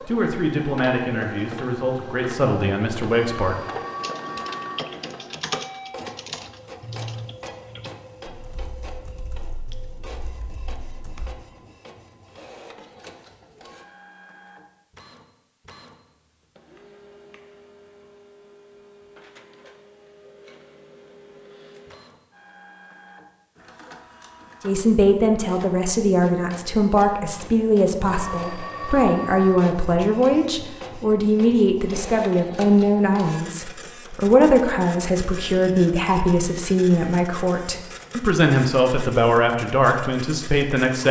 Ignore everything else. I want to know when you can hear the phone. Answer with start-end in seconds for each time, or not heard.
3.2-4.8, 28.0-29.6.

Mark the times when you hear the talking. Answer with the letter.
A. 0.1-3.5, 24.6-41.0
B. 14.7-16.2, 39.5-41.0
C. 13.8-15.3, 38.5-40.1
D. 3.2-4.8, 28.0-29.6
A.